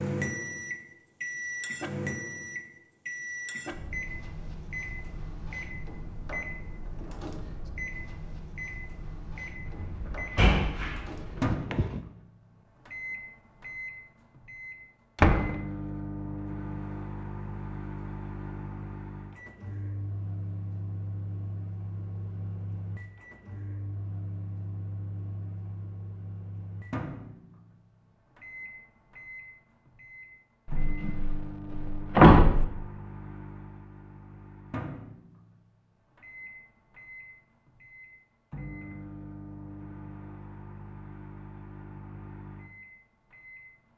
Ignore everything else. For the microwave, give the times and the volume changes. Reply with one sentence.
You can hear the microwave from 0.0 to 43.9 s, getting quieter.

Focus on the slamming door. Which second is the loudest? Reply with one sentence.
The loudest moment of the slamming door is at 32 seconds.